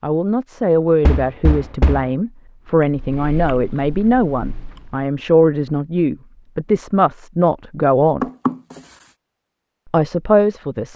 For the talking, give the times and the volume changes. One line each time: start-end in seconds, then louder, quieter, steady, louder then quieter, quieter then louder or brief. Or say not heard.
0.0-8.2 steady
9.9-10.9 brief.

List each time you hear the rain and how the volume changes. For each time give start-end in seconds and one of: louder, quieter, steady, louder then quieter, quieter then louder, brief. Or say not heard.
not heard.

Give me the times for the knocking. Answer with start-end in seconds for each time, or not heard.
1.0-2.0, 8.2-8.8.